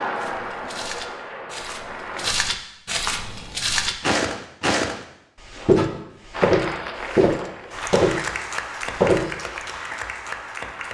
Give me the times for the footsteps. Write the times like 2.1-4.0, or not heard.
0.1-9.3.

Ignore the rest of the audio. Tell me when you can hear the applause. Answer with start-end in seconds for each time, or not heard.
0.0-2.4, 6.3-10.8.